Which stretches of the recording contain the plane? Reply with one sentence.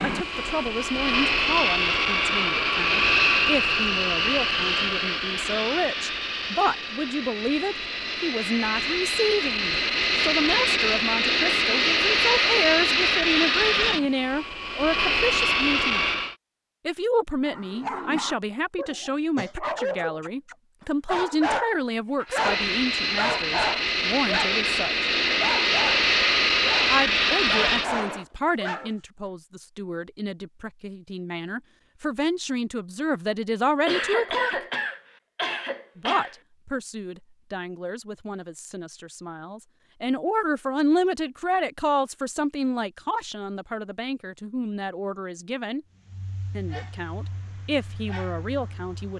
You can hear the plane from 0.0 to 16.4 s and from 22.2 to 28.2 s.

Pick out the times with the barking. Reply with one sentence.
The barking can be heard from 17.4 to 24.6 s, from 25.4 to 28.9 s and from 46.0 to 49.1 s.